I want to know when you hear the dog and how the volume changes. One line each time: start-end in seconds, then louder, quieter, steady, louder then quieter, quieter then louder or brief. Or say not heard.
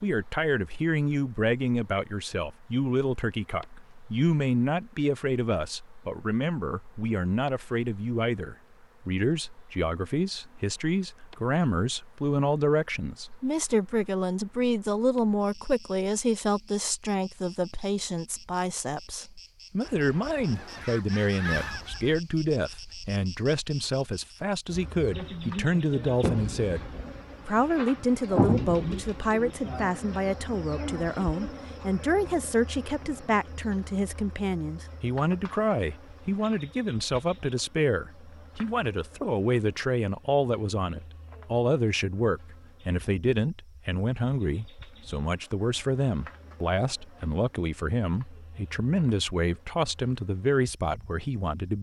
not heard.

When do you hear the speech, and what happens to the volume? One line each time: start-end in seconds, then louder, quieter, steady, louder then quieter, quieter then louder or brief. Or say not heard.
0.0-51.7 steady.